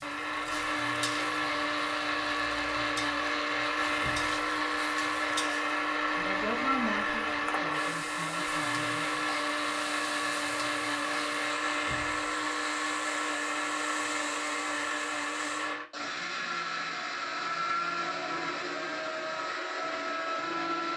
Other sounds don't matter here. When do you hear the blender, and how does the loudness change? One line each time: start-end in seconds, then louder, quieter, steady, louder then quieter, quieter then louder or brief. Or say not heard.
0.0-20.9 steady.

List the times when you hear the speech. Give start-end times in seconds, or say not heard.
6.1-9.2.